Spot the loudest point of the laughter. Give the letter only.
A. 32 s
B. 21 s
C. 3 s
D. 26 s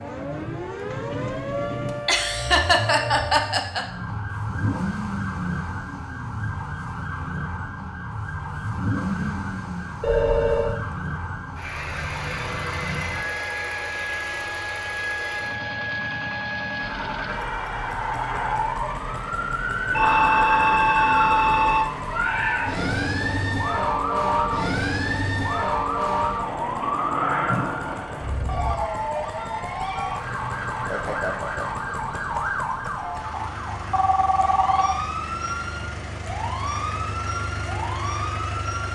C.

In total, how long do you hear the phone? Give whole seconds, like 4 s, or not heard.
4 s.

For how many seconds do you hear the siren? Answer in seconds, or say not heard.
39 s.